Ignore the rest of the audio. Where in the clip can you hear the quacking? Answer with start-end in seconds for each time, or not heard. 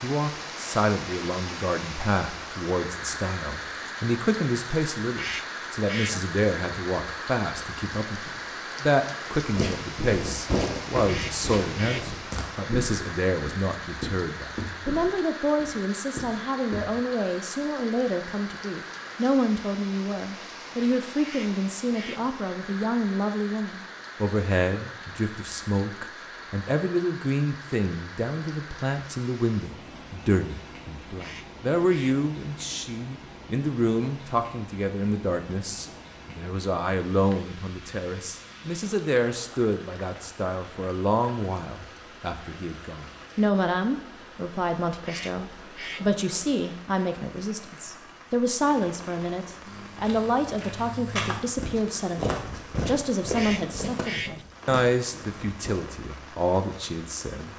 5.2-6.2, 11.1-12.2, 21.2-22.3, 31.1-32.2, 45.0-46.1, 53.3-54.5.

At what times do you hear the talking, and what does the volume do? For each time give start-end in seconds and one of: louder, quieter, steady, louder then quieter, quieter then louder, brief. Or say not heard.
0.0-57.5 steady.